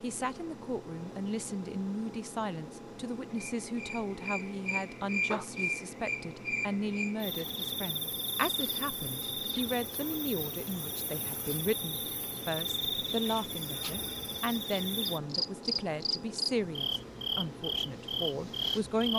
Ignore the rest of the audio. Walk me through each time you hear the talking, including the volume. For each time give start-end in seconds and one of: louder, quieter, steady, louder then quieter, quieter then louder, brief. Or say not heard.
0.0-19.1 steady.